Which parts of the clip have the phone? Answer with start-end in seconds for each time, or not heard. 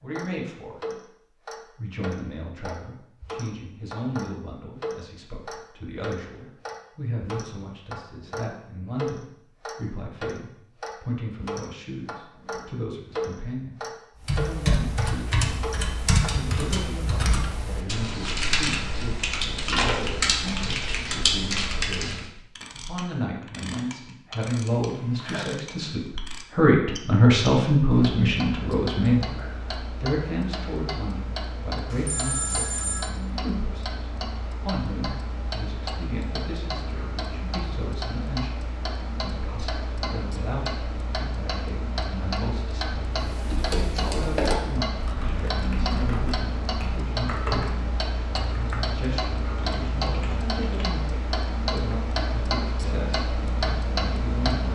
24.6-25.4, 31.9-33.1.